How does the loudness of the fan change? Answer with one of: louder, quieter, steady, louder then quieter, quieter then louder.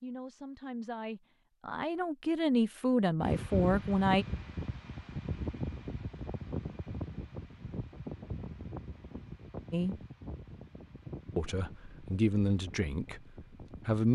quieter.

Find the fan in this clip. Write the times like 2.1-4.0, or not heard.
3.2-14.1.